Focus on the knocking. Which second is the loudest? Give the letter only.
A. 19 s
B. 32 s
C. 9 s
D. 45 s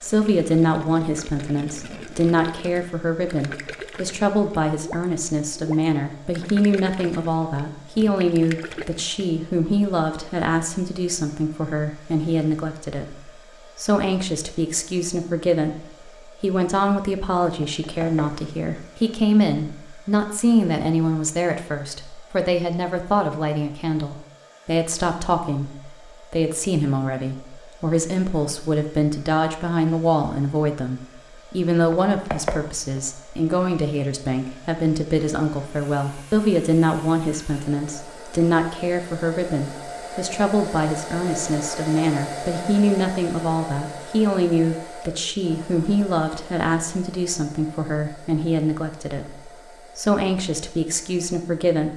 B.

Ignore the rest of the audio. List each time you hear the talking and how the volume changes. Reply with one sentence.
You can hear the talking from 0.0 to 51.9 s, at a steady volume.